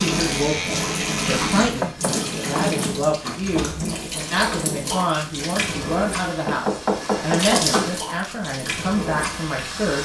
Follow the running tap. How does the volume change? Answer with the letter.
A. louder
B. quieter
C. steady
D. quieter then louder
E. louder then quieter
C.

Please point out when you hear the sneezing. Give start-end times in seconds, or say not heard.
not heard.